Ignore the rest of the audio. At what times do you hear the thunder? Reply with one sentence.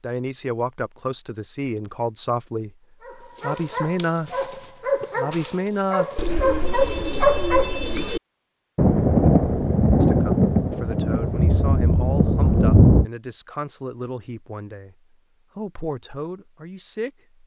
You can hear the thunder from 8.8 to 13.1 s.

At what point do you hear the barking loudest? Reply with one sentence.
The volume of the barking peaks at 7 seconds.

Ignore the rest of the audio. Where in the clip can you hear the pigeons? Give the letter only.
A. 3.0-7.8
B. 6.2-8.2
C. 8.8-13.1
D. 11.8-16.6
B.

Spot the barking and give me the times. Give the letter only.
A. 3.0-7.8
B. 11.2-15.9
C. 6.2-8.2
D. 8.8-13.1
A.